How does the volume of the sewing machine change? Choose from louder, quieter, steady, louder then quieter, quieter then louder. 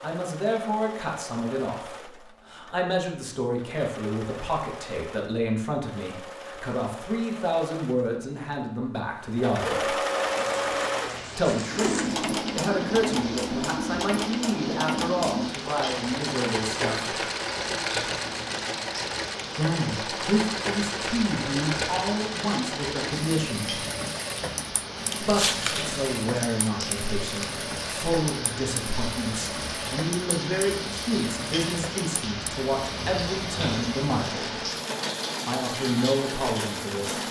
louder then quieter.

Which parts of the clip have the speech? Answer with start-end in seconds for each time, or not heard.
0.0-9.9, 11.3-17.2, 19.6-23.9, 25.2-34.6, 35.5-37.2.